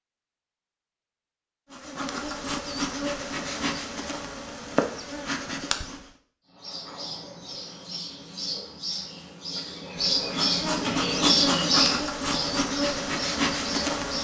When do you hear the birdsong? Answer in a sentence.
You can hear the birdsong from 6.5 to 14.2 s.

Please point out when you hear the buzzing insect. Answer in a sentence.
The buzzing insect can be heard from 1.7 to 6.1 s and from 9.8 to 14.2 s.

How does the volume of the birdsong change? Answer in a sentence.
The volume of the birdsong goes up, then down.